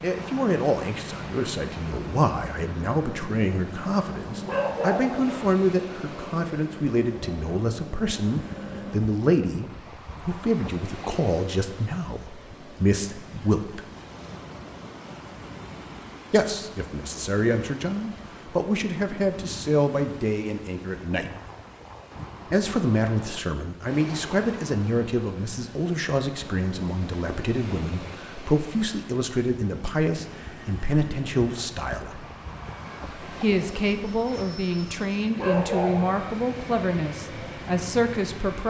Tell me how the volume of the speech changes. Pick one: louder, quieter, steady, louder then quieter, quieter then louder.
steady.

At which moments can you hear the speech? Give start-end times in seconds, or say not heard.
0.0-13.8, 16.3-21.4, 22.5-32.3, 33.2-38.6.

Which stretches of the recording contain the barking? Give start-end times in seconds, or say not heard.
4.5-5.5, 35.4-36.4.